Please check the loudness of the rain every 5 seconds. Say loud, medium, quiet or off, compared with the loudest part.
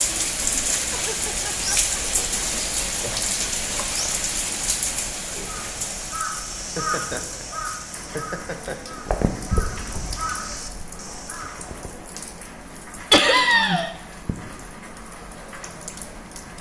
loud, medium, quiet, quiet.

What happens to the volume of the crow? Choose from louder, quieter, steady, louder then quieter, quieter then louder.
quieter then louder.